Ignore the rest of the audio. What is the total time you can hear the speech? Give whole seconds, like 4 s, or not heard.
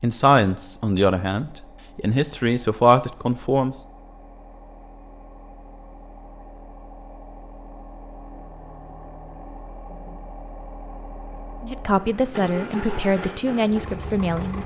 7 s.